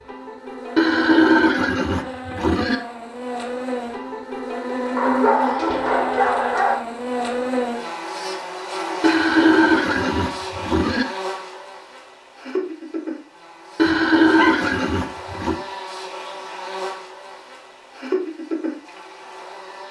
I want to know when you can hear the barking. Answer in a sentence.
The barking can be heard from 5.0 to 6.8 s and from 13.8 to 14.7 s.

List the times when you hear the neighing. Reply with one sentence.
The neighing can be heard from 0.8 to 2.8 s, from 9.0 to 11.1 s and from 13.8 to 15.6 s.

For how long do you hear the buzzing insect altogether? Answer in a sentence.
The buzzing insect can be heard for 20 seconds in total.